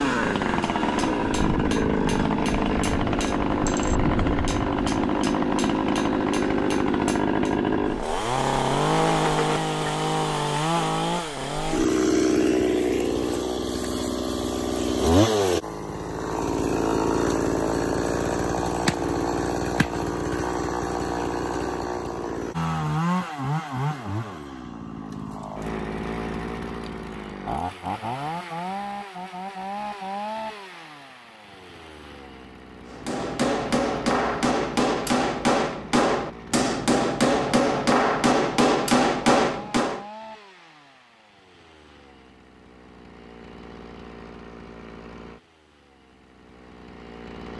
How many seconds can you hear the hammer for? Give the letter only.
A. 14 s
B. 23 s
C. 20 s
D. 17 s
A.